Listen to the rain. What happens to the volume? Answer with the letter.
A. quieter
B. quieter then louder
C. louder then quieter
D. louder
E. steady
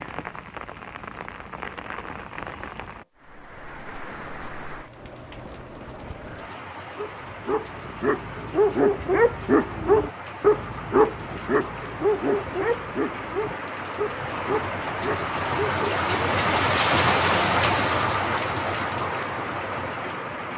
D.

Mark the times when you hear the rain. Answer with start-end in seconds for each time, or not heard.
0.0-20.5.